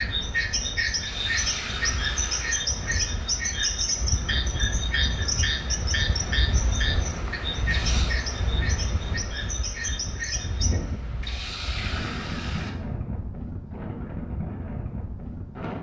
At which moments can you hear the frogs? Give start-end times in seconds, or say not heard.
0.0-10.8.